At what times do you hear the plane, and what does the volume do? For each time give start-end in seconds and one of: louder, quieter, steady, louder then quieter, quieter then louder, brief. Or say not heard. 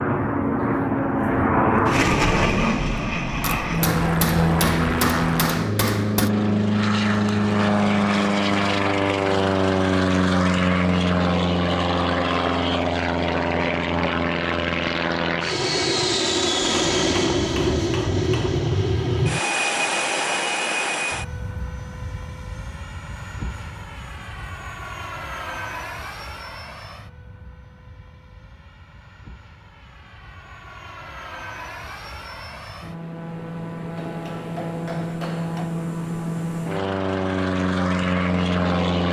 0.0-39.0 quieter then louder.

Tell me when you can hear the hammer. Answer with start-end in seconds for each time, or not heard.
3.4-6.3, 16.6-18.6, 34.0-35.8.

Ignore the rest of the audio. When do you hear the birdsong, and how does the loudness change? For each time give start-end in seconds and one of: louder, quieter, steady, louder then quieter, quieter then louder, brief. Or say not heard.
not heard.